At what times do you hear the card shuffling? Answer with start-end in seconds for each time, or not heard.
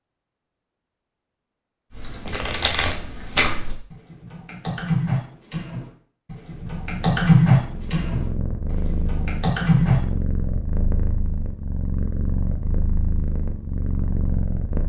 2.2-3.5.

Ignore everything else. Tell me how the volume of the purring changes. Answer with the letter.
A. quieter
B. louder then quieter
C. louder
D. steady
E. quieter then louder
D.